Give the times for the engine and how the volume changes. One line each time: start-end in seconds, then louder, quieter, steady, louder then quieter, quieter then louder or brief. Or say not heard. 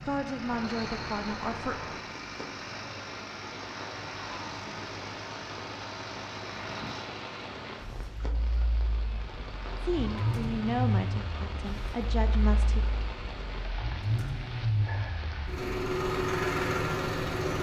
0.0-17.5 louder.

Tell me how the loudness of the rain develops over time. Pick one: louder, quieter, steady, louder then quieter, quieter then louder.
steady.